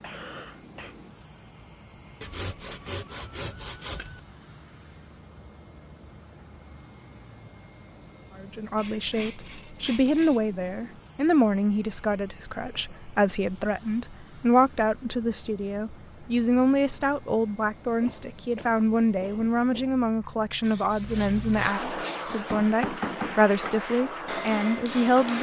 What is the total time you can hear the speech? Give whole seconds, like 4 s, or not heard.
17 s.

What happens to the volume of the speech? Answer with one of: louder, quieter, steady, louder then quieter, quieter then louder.
steady.